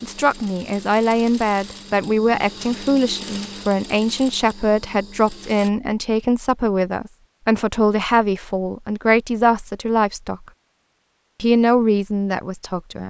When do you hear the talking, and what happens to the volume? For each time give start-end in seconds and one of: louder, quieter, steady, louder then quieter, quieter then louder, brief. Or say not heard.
0.0-10.4 steady
11.4-13.0 brief.